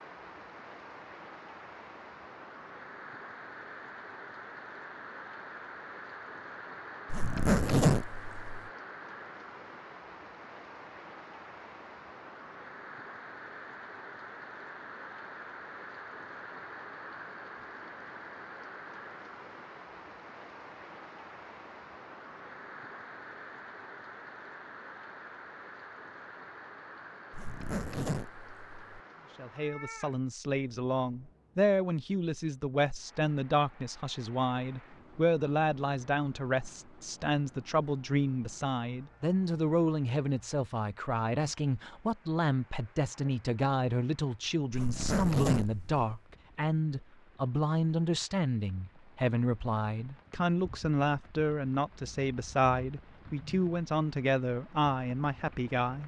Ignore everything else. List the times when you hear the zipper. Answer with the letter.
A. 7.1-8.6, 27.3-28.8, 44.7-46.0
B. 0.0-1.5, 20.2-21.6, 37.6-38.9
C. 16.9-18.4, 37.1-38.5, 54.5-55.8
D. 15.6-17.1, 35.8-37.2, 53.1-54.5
A.